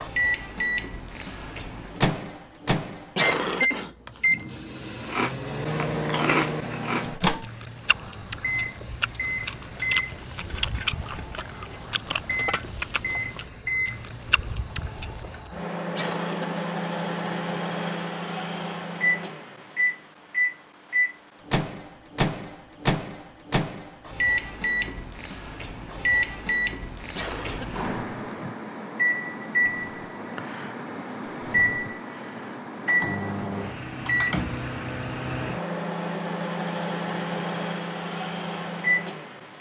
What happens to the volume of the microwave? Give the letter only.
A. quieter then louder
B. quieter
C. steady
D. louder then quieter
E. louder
C.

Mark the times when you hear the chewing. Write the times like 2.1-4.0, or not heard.
5.0-15.5.